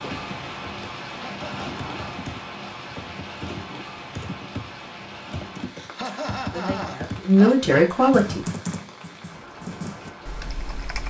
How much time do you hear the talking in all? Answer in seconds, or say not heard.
2 s.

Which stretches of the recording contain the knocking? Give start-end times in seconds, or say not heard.
not heard.